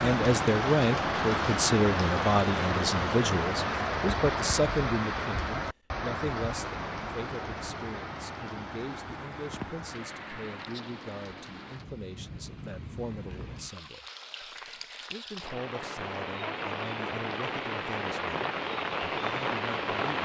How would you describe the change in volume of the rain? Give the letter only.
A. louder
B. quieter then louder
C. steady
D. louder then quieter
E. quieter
B.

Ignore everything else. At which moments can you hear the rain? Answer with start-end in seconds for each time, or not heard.
0.0-20.1.